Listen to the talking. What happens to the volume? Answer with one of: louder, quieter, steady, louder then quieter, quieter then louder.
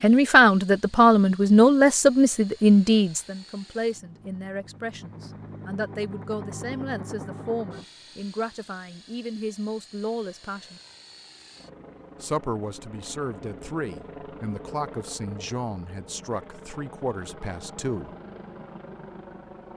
quieter.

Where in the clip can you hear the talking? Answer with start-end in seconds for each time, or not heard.
0.0-10.8, 12.2-18.1.